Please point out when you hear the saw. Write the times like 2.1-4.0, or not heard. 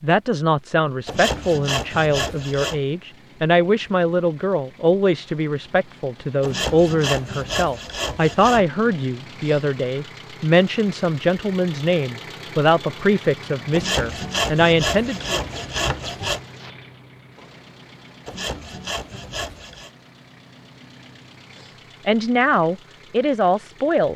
1.1-2.8, 6.4-8.7, 13.7-16.4, 18.2-19.9.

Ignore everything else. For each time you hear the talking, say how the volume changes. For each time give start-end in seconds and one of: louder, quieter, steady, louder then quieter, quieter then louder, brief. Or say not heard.
0.0-15.4 steady
22.1-24.1 brief.